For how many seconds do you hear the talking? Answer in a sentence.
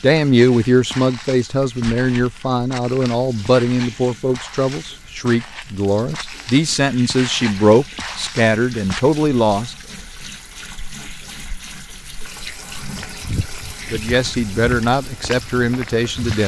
You can hear the talking for 12 seconds altogether.